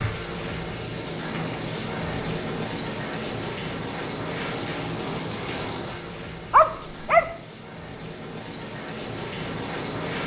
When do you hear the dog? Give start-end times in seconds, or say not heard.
6.5-7.3.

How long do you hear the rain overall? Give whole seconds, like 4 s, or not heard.
10 s.